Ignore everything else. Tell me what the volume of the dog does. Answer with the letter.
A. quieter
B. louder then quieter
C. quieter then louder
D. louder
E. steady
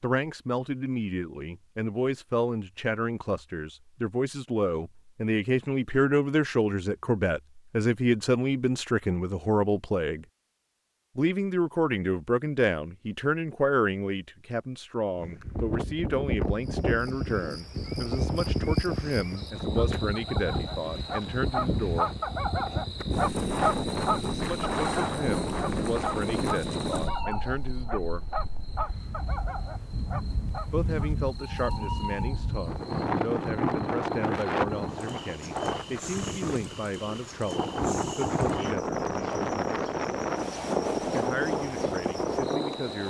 B.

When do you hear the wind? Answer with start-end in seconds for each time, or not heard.
15.2-43.0.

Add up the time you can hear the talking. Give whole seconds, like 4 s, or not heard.
36 s.